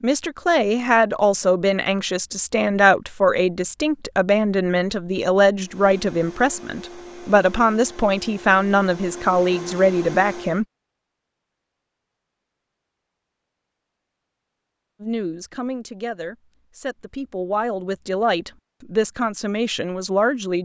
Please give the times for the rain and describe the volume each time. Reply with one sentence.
You can't hear the rain here.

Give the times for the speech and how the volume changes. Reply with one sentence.
You can hear the speech from 0.0 to 10.7 s, at a steady volume; and from 15.0 to 20.6 s, getting louder.